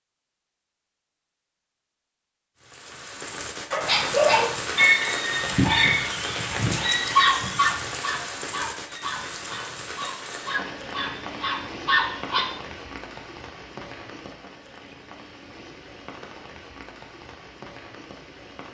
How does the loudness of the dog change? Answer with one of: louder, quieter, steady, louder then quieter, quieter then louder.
quieter then louder.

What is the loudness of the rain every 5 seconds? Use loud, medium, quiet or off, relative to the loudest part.
loud, loud, medium, quiet.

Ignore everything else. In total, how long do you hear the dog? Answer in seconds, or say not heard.
9 s.